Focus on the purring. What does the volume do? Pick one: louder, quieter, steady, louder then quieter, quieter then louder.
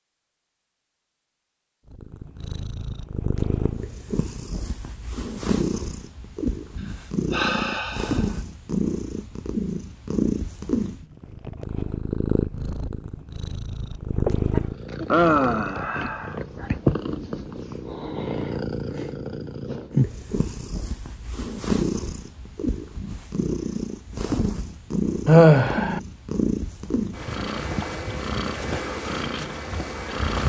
steady.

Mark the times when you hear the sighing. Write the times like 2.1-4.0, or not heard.
7.3-8.2, 14.2-16.7, 25.2-26.0.